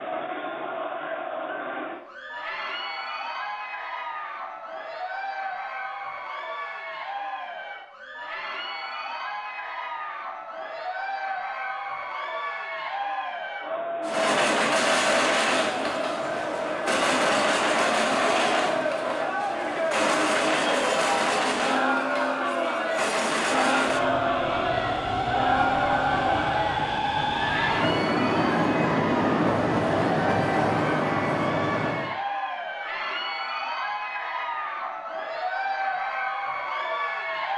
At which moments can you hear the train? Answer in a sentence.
You can hear the train from 14.0 to 32.1 s.